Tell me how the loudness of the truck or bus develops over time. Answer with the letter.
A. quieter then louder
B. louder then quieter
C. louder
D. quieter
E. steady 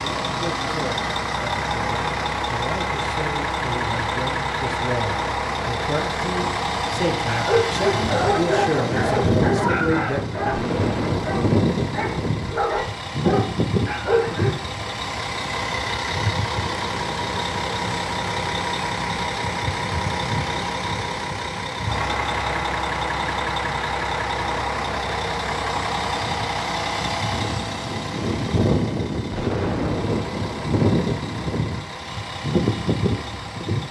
E.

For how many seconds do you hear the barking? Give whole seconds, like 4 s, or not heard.
7 s.